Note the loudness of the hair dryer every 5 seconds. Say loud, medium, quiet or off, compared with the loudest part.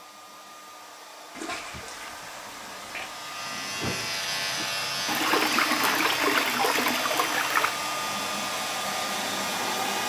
medium, loud.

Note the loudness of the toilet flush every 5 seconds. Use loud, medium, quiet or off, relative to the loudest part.
quiet, loud.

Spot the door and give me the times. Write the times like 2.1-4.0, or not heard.
3.8-4.7.